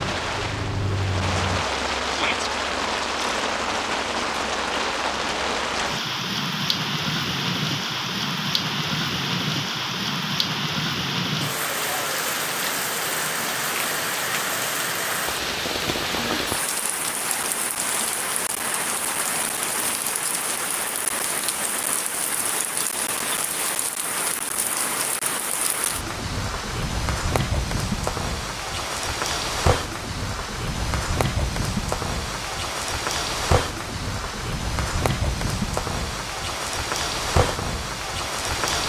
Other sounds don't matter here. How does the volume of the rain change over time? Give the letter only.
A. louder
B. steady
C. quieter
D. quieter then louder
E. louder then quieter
B.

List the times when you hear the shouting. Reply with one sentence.
You can hear the shouting from 2.0 to 2.5 s.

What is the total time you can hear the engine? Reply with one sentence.
The engine can be heard for 2 seconds in total.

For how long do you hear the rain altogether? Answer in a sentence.
You can hear the rain for 39 seconds altogether.